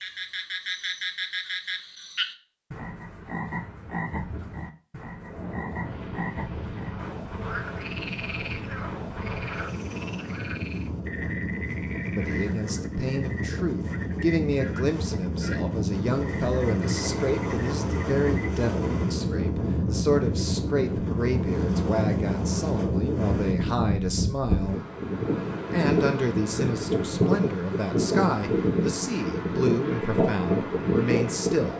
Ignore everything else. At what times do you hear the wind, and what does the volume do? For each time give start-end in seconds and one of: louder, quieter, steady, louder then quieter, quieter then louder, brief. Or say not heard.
5.2-31.7 louder.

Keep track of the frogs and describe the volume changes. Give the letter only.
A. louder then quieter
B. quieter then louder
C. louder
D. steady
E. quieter
E.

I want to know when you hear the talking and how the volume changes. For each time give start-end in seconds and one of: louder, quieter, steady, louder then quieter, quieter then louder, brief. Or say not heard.
12.2-24.8 steady
25.7-31.7 steady.